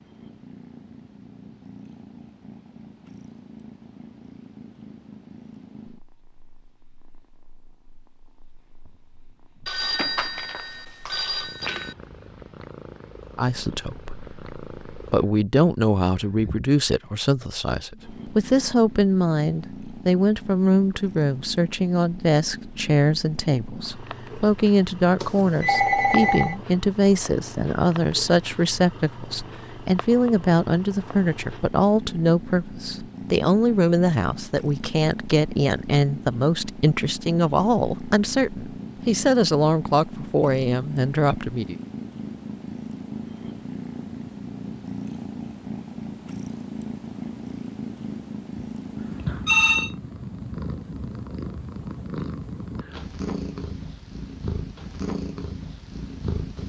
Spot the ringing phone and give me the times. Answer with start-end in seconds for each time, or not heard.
9.7-11.9, 25.2-26.6, 48.5-49.9.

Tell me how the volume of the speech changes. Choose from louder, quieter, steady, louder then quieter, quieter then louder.
steady.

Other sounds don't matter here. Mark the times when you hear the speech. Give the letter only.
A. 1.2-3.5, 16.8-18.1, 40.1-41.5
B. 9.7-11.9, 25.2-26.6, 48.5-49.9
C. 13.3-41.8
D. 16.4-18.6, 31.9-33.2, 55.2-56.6
C.